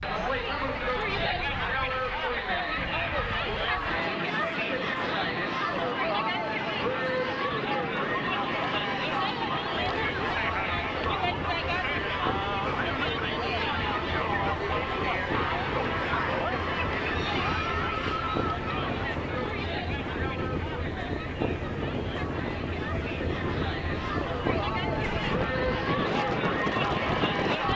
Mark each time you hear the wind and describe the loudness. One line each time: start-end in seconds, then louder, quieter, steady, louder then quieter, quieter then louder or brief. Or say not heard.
0.0-27.7 louder.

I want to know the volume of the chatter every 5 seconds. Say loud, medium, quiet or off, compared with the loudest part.
loud, loud, loud, loud, medium, loud.